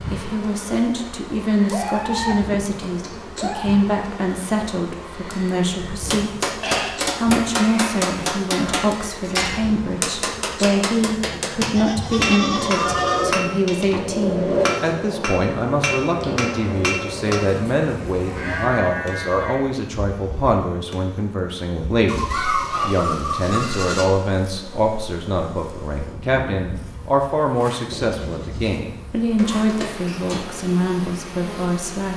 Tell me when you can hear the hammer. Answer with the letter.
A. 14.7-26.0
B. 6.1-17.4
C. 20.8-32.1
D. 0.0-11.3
B.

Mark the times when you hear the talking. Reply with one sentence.
The talking can be heard from 0.0 to 6.5 s and from 7.2 to 32.1 s.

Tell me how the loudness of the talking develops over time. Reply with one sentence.
The loudness of the talking stays about the same.